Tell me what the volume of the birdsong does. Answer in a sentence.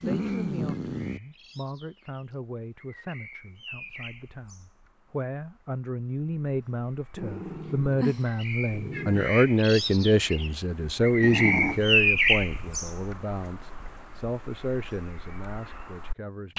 The volume of the birdsong goes up, then down.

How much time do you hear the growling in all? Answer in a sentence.
You can hear the growling for 4 seconds altogether.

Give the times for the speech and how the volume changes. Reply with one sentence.
You can hear the speech from 0.0 to 16.5 s, getting louder then quieter.